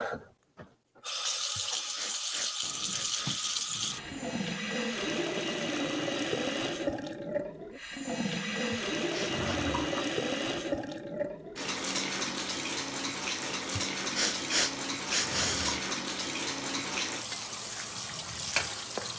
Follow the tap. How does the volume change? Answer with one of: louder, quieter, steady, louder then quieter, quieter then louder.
steady.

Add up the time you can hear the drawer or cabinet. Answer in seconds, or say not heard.
4 s.